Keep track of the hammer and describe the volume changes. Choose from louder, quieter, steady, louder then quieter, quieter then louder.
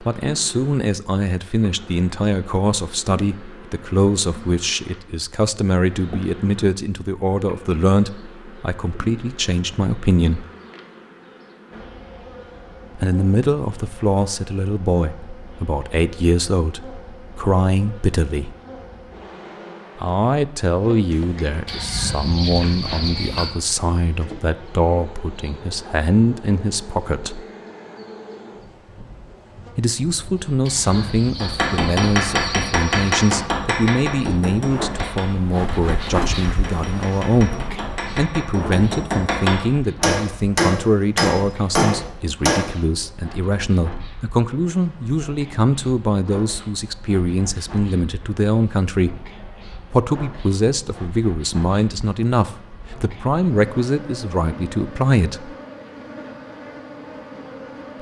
quieter then louder.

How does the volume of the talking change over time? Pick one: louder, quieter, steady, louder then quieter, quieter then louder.
steady.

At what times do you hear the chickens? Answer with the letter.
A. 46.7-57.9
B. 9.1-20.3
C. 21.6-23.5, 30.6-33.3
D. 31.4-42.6
C.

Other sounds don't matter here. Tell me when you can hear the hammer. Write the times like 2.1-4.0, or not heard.
31.4-42.6.